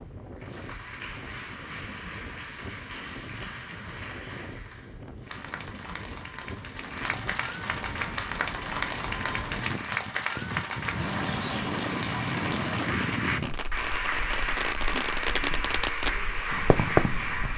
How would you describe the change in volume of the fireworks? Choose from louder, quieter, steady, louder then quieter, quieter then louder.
louder.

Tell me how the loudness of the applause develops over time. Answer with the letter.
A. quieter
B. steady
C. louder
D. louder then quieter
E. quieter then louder
C.